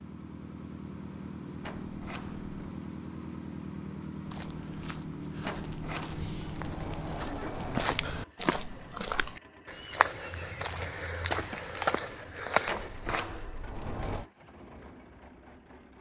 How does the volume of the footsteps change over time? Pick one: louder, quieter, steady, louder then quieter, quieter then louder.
louder.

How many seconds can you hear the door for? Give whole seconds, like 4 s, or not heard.
5 s.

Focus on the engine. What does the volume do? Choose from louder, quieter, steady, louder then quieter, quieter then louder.
quieter.